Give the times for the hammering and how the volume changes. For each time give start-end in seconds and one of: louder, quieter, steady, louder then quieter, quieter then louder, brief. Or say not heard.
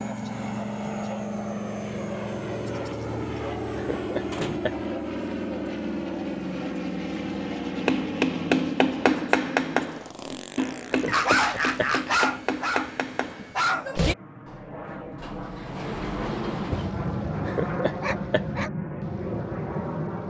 7.8-14.0 quieter.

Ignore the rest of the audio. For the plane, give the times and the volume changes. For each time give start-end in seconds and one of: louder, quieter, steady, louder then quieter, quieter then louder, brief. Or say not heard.
0.0-20.2 quieter then louder.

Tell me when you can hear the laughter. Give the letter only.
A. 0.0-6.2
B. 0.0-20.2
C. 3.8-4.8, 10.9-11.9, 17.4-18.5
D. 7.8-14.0
C.